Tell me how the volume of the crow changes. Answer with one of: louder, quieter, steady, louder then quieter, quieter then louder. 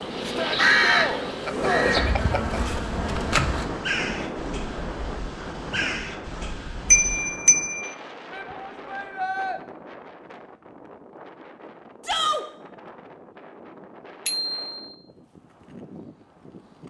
quieter then louder.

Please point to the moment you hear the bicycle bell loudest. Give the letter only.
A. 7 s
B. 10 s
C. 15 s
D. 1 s
A.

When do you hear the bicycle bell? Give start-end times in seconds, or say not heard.
1.4-2.6, 6.9-7.9, 14.2-14.9.